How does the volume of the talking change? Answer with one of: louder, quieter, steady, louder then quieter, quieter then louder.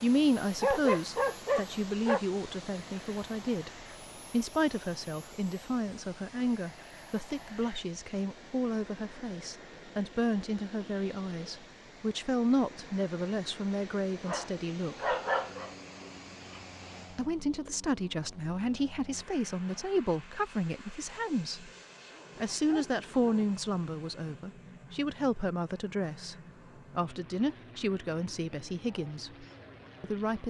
steady.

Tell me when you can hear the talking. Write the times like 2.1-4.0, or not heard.
0.0-3.7, 4.3-15.2, 17.1-21.7, 22.4-26.4, 26.9-30.4.